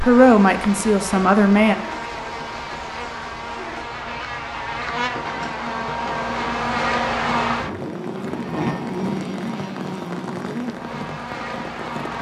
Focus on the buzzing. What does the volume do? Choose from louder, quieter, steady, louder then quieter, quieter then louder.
louder then quieter.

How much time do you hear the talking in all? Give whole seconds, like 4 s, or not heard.
2 s.